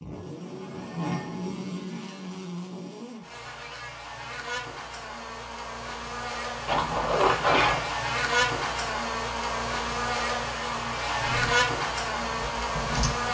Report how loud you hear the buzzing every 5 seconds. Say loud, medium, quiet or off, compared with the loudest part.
medium, loud, loud.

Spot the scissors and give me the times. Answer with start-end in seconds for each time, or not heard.
6.7-7.9.